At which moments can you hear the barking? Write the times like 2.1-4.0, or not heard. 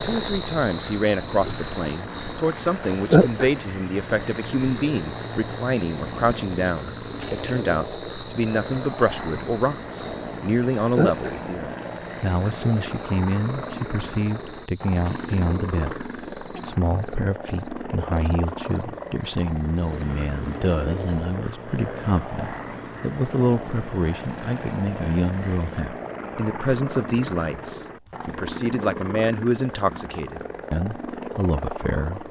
not heard.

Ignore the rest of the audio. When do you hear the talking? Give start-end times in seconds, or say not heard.
0.0-32.2.